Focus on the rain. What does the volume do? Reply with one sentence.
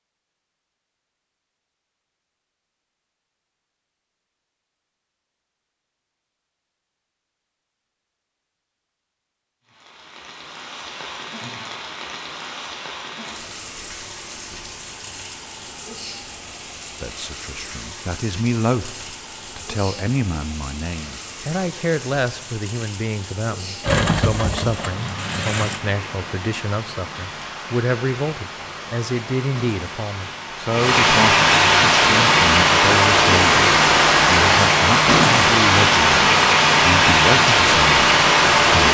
The loudness of the rain goes up.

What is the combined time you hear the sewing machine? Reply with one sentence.
You can hear the sewing machine for 2 seconds altogether.